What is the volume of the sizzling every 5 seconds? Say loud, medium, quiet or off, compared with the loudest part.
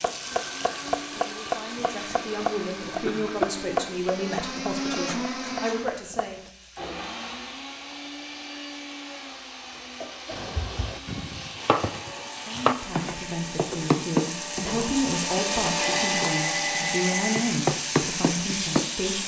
medium, quiet, medium, loud.